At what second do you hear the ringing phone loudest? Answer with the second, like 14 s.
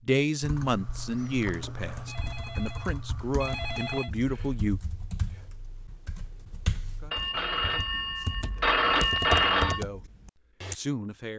9 s.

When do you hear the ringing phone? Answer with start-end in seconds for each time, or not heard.
1.9-4.1, 7.1-9.8.